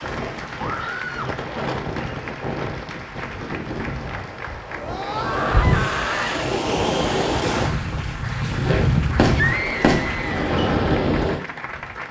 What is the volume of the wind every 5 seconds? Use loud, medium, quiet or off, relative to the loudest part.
medium, loud, loud.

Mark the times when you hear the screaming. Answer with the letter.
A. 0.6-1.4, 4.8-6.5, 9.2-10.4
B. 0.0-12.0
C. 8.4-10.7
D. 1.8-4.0
A.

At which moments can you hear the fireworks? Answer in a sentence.
The fireworks can be heard from 8.4 to 10.7 s.